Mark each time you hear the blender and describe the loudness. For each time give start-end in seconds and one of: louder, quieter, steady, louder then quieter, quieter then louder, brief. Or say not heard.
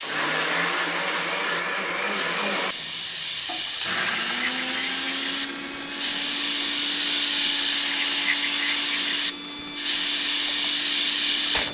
0.0-11.6 quieter.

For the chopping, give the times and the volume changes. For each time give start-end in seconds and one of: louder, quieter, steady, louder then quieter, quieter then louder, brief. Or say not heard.
not heard.